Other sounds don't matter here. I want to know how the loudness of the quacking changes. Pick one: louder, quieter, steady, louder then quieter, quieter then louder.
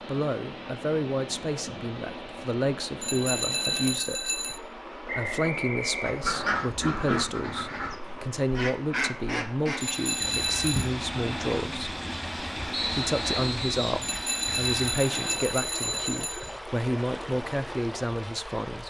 quieter.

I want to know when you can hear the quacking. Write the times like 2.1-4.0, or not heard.
6.0-14.8.